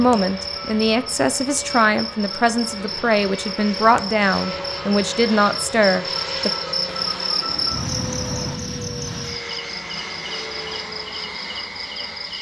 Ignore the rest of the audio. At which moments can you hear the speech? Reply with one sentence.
The speech can be heard from 0.0 to 6.5 s.